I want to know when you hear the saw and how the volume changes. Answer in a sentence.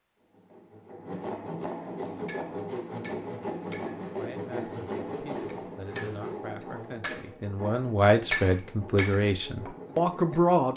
You can hear the saw from 0.1 to 10.6 s, getting quieter.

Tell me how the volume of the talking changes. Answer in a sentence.
The volume of the talking goes up.